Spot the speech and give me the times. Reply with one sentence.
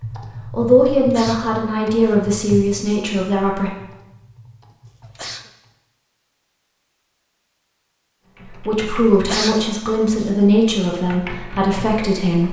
The speech can be heard from 0.5 to 3.7 s and from 8.4 to 12.4 s.